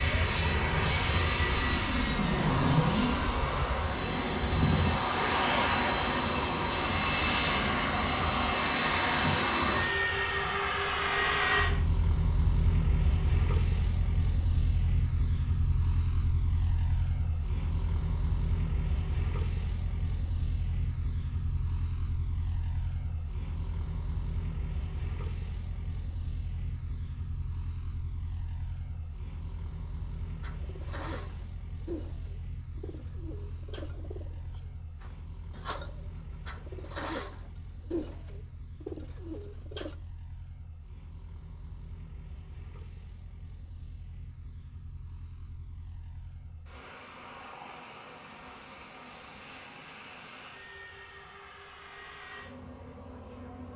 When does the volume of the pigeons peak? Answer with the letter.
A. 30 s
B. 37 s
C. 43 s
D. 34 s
B.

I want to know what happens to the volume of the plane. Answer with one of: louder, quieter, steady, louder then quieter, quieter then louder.
quieter.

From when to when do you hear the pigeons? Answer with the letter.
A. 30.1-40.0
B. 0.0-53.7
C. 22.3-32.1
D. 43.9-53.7
A.